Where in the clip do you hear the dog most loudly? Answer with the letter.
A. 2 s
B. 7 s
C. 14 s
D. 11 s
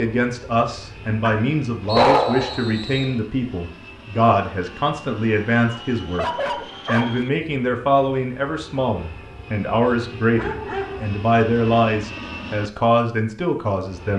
A.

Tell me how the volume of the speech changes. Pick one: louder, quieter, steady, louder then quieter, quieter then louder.
steady.